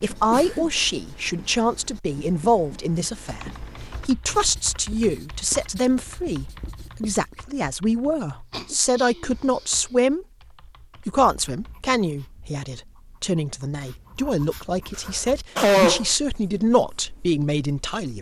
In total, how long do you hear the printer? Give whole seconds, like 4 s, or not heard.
not heard.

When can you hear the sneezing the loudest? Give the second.
16 s.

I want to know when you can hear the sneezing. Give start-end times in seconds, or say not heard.
0.1-0.8, 8.5-9.8, 14.9-16.1.